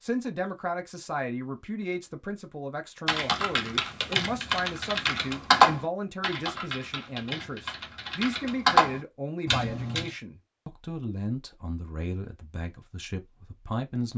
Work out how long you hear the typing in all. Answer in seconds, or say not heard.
7 s.